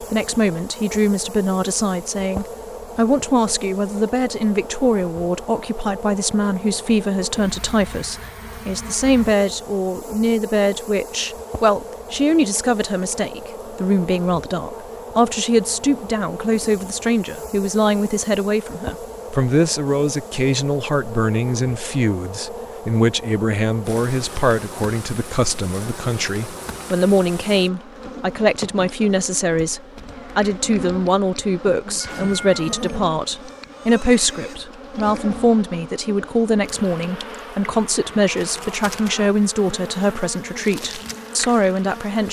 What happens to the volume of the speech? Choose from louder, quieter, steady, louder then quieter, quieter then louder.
steady.